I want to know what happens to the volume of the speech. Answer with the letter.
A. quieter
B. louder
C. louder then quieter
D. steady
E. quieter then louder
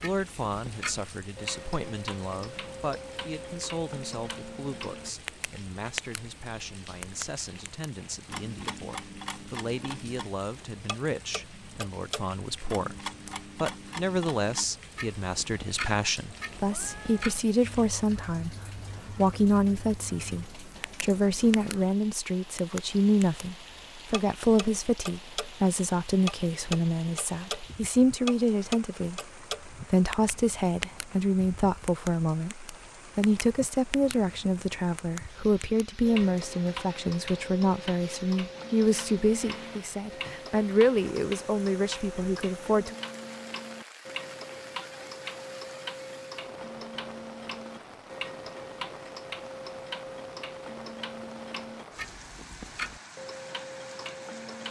B.